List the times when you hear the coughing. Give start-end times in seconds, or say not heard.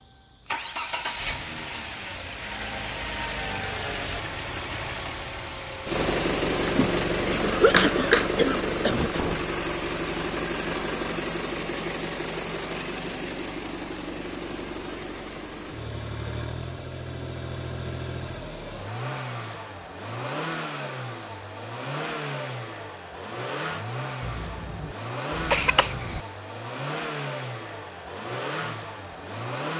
6.7-8.8, 24.2-26.2.